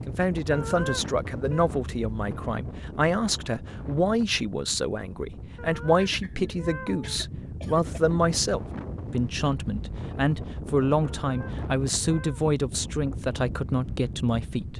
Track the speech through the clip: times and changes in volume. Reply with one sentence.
The speech can be heard from 0.1 to 14.7 s, at a steady volume.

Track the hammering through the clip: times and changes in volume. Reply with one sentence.
The hammering can't be heard in this clip.